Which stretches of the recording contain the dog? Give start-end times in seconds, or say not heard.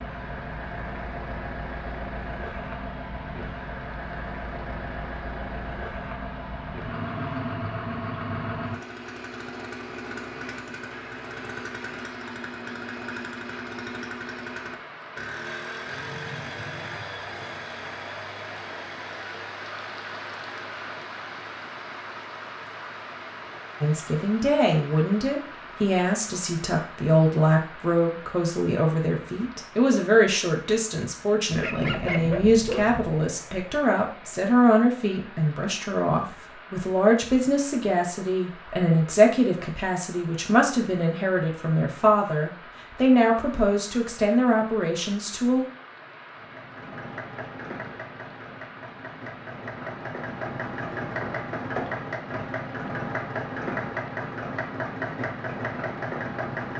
7.0-7.6, 31.5-33.1.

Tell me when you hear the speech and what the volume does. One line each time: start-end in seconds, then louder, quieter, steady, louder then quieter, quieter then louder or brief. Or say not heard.
23.8-45.6 steady.